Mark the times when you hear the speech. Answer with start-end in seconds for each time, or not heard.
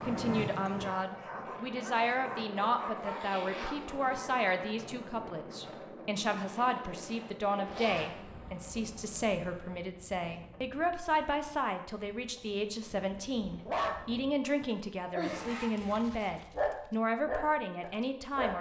0.1-18.5.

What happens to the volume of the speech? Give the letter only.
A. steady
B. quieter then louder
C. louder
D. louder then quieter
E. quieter
A.